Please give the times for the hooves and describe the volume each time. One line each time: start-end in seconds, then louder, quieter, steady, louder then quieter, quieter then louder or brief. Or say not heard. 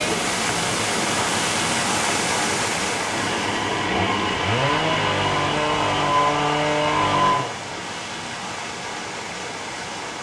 not heard.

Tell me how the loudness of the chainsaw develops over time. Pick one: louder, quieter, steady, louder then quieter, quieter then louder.
louder.